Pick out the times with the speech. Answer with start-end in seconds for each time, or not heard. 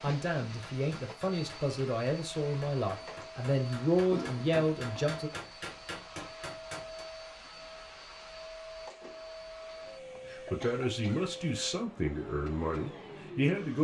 0.0-5.3, 10.3-13.7.